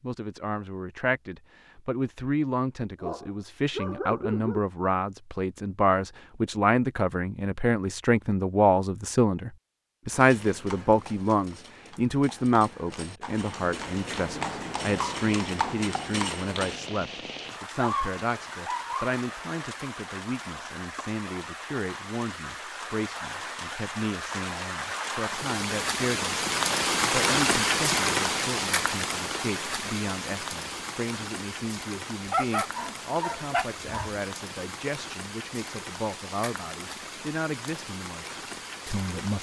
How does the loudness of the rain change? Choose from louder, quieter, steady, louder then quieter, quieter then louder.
louder then quieter.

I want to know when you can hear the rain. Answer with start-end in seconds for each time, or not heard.
16.5-39.3.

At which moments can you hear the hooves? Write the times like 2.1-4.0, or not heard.
10.1-16.8.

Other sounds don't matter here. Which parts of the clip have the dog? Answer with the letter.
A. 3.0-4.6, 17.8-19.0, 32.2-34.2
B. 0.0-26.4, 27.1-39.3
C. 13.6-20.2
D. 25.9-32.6
A.